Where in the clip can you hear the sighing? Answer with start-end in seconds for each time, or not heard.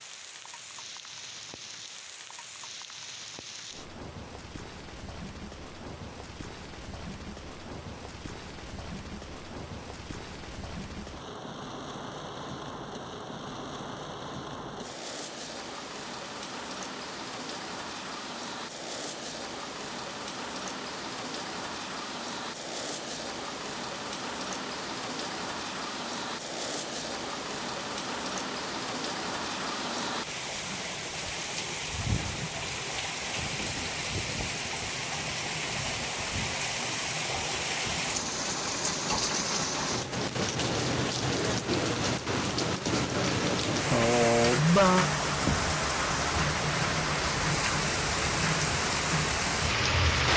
43.9-45.0.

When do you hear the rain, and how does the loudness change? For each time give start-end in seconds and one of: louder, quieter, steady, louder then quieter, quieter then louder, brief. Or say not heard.
0.0-50.3 louder.